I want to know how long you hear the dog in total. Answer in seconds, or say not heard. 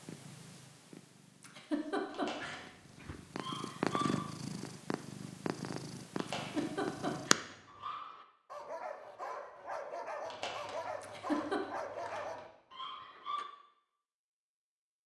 8 s.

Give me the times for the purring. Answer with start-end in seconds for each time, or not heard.
0.0-7.4.